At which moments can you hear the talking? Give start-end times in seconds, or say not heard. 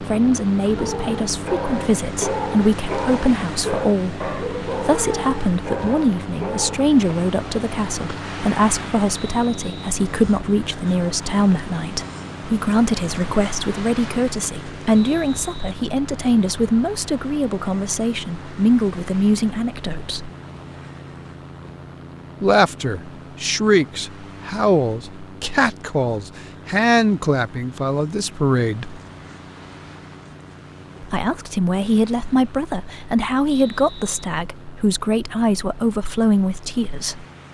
0.0-20.3, 22.4-29.0, 31.0-37.2.